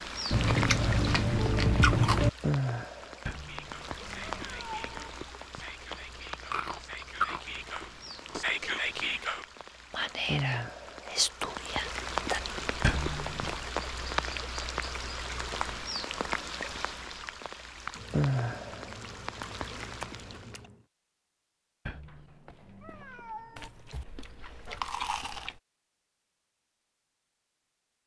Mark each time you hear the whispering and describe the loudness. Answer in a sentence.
The whispering can be heard from 3.4 to 12.4 s, getting louder.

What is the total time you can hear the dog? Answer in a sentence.
The dog can't be heard in this clip.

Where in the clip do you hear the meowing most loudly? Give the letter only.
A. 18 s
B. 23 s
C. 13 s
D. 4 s
C.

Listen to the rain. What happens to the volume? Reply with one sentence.
The volume of the rain goes down, then up.